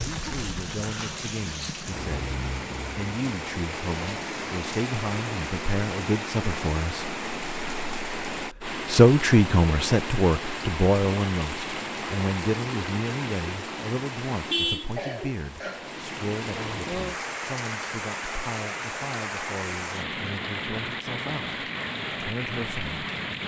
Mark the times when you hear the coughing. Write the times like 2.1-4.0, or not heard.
14.9-16.0.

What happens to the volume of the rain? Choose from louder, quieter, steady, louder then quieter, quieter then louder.
steady.